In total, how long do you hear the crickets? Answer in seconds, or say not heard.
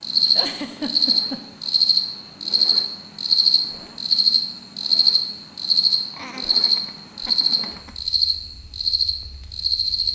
10 s.